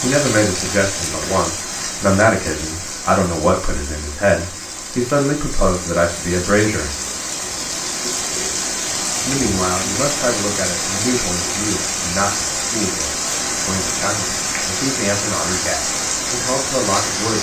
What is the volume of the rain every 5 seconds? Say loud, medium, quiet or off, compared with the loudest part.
medium, loud, loud, loud.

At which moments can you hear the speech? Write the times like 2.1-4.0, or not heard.
0.0-6.9, 9.2-17.3.